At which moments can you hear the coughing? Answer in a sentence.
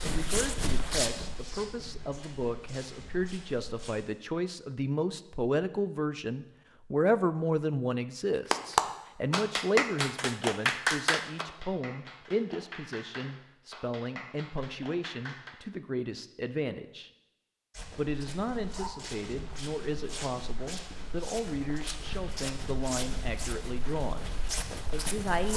The coughing can't be heard in this clip.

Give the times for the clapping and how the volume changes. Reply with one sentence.
The clapping can be heard from 8.5 to 15.6 s, getting quieter.